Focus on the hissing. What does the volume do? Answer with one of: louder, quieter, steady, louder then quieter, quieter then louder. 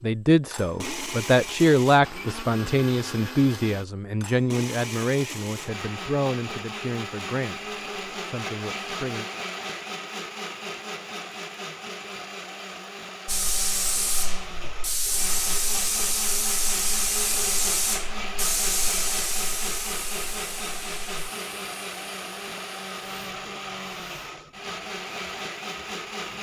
quieter.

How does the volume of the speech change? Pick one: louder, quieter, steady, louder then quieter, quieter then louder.
quieter.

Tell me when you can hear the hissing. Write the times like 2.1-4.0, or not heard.
13.2-26.3.